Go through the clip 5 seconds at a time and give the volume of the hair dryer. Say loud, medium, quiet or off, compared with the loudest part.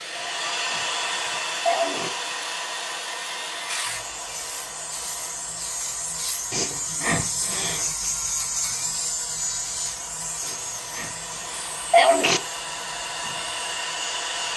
loud, quiet, loud.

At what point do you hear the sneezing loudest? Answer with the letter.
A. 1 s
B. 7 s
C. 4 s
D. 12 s
D.